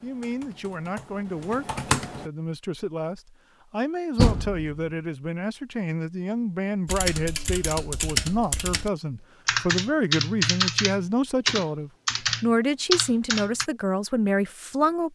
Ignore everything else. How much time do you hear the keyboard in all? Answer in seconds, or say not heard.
9 s.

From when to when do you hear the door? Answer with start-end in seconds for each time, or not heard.
4.2-4.8.